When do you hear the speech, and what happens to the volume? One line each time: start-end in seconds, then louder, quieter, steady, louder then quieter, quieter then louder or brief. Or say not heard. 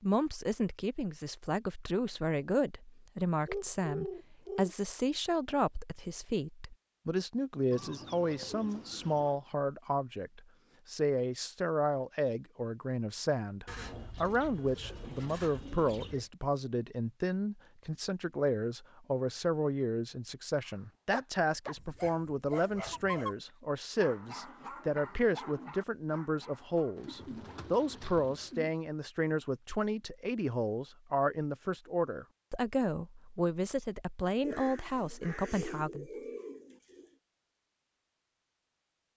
0.0-36.1 steady.